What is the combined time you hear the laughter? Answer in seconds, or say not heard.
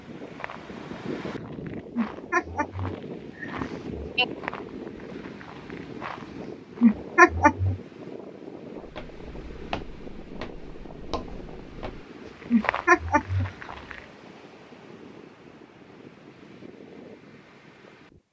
4 s.